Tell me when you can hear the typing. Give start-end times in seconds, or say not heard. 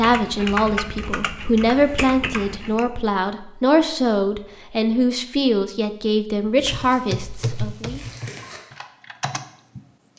0.0-2.9, 6.5-10.1.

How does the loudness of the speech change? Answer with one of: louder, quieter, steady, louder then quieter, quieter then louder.
steady.